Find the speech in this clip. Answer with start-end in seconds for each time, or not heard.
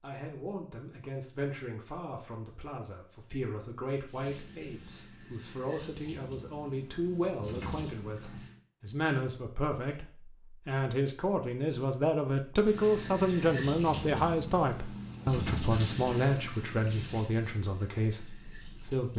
0.0-19.1.